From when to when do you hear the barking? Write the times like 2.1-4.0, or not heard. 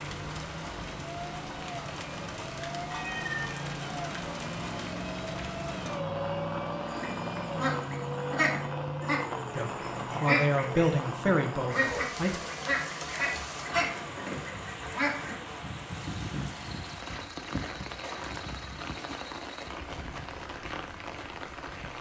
not heard.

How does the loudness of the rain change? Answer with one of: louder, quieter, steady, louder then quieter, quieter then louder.
steady.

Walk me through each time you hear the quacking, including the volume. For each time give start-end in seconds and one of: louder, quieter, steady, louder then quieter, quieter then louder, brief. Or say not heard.
6.8-15.3 steady.